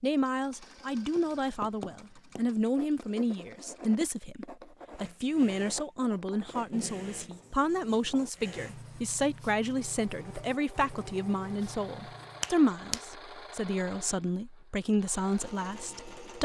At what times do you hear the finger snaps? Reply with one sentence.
The finger snaps can be heard from 12.4 to 13.1 s.